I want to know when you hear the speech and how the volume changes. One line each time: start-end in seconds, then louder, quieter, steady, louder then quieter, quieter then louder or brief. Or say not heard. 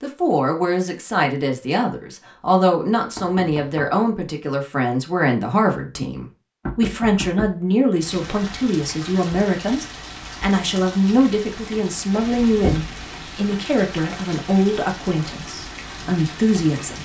0.0-17.0 steady.